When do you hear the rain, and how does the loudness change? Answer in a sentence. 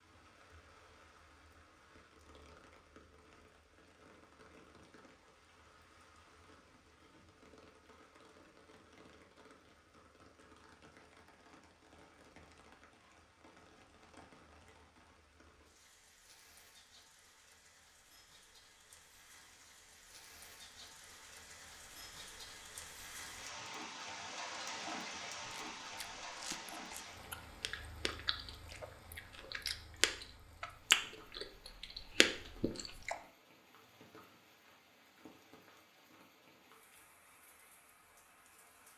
The rain can be heard from 0.0 to 38.9 s, getting louder then quieter.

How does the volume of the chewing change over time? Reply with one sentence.
The volume of the chewing goes up, then down.